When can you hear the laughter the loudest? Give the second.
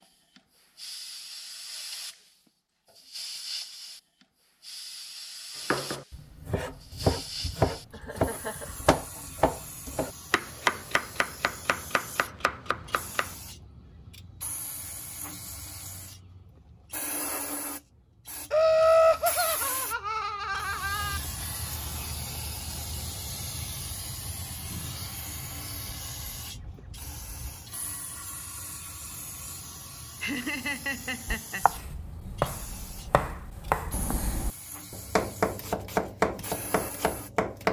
19 s.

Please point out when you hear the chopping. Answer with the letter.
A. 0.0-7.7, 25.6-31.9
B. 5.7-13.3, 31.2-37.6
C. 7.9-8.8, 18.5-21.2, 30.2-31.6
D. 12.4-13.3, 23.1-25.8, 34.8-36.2
B.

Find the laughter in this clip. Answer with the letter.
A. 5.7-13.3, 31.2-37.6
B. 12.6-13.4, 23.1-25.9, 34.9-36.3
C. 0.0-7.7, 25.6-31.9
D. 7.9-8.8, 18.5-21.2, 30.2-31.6
D.